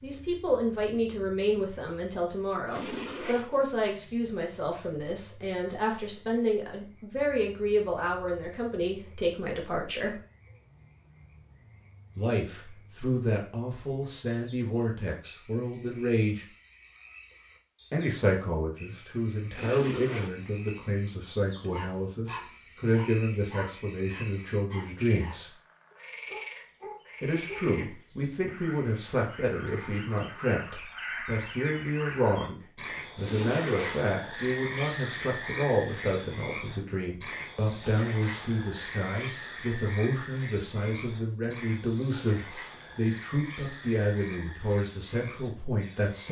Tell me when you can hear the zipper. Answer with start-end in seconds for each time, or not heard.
2.6-3.8, 19.5-20.8, 33.1-34.0.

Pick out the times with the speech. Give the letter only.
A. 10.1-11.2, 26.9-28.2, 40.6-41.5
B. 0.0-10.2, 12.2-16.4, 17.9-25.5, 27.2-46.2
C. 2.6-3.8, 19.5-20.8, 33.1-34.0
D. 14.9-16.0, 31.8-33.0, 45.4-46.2
B.